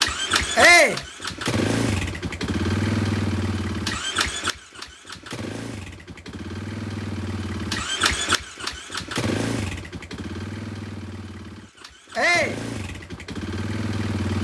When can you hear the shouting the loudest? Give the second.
1 s.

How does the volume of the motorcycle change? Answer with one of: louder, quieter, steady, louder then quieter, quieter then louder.
quieter.